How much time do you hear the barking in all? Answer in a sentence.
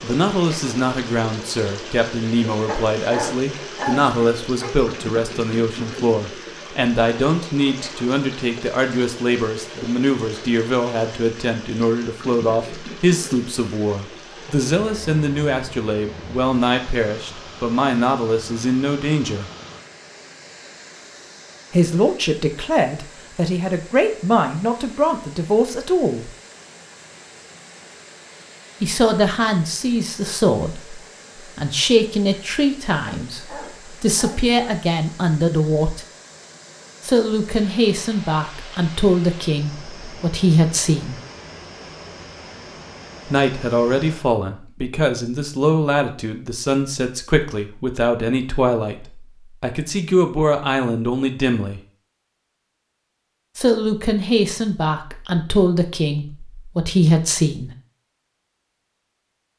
You can hear the barking for 4 seconds altogether.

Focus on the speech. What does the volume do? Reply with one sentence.
The loudness of the speech stays about the same.